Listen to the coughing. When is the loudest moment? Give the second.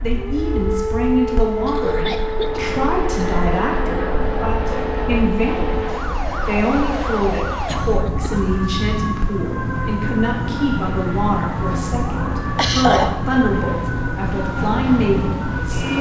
13 s.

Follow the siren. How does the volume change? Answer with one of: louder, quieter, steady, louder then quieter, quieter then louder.
steady.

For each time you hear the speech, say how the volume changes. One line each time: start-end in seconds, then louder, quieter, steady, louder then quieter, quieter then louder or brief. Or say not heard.
0.0-15.9 steady.